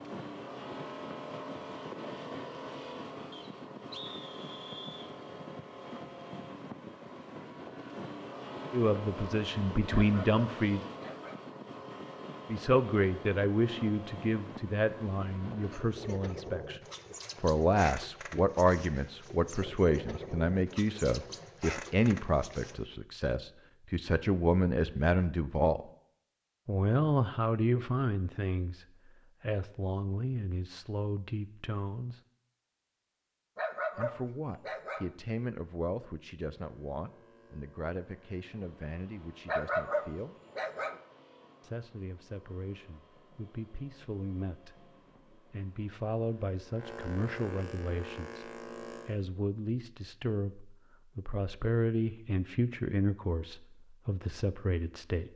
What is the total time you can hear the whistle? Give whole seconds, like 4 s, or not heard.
2 s.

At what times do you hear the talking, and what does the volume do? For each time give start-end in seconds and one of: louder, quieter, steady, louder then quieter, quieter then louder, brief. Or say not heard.
8.7-10.8 brief
12.4-16.8 quieter
17.4-25.9 quieter then louder
26.6-32.2 quieter
34.0-40.4 quieter
41.6-55.3 louder.